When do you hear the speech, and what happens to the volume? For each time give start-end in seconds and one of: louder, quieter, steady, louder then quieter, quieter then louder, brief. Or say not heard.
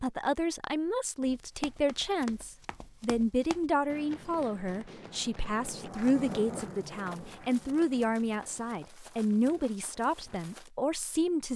0.0-11.5 steady.